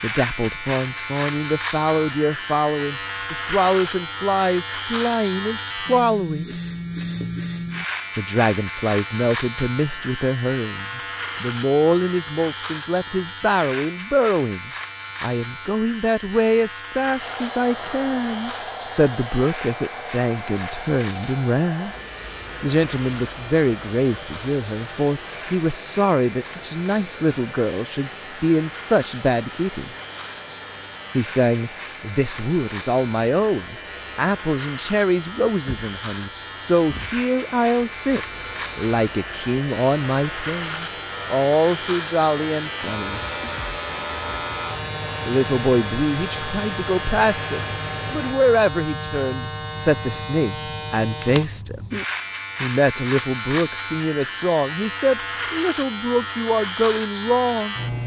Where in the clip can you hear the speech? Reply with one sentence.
The speech can be heard from 0.0 to 6.5 s, from 8.2 to 21.9 s, from 22.6 to 29.9 s, from 31.1 to 43.2 s, from 45.2 to 51.9 s and from 52.6 to 57.8 s.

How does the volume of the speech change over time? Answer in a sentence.
The loudness of the speech stays about the same.